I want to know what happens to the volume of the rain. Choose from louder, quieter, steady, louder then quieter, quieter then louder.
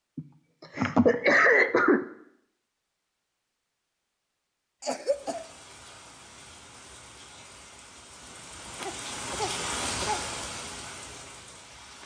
louder then quieter.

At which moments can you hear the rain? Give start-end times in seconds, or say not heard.
5.0-12.0.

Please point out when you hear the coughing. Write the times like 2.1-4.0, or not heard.
0.1-2.0, 4.8-5.5, 8.8-10.2.